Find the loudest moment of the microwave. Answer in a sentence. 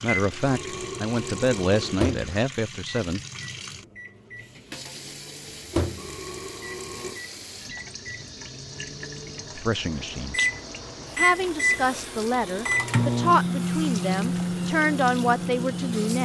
The loudest moment of the microwave is at 13 seconds.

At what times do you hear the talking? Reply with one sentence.
The talking can be heard from 0.0 to 3.2 s, from 9.6 to 10.3 s and from 11.2 to 16.2 s.